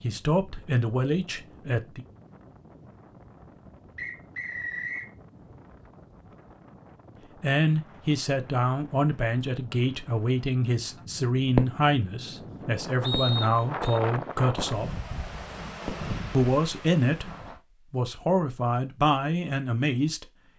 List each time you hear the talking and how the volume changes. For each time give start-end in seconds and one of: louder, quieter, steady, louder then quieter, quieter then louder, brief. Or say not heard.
0.0-2.0 brief
7.2-15.0 steady
16.3-17.3 brief
17.9-20.2 brief.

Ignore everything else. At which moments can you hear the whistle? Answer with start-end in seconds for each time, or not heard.
4.0-5.1, 13.0-14.0.